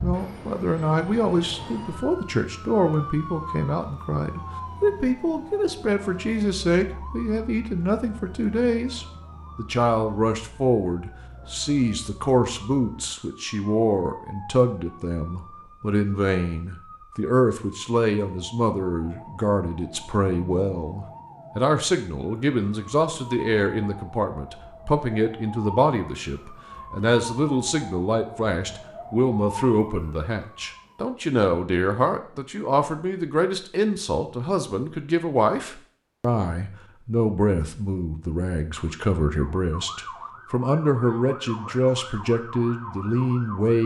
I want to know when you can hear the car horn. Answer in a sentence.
The car horn can't be heard in this clip.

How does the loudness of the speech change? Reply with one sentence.
The loudness of the speech stays about the same.